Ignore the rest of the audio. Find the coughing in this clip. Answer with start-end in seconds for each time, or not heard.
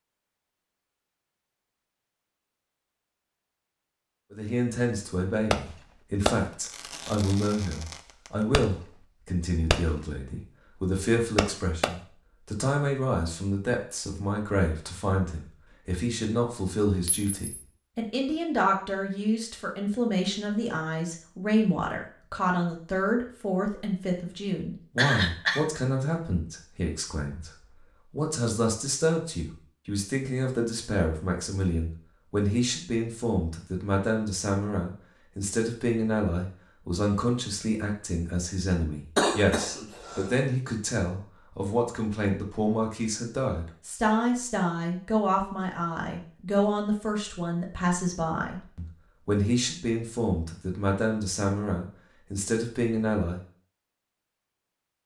24.9-25.6, 39.1-40.3.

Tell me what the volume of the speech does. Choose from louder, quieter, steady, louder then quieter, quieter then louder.
steady.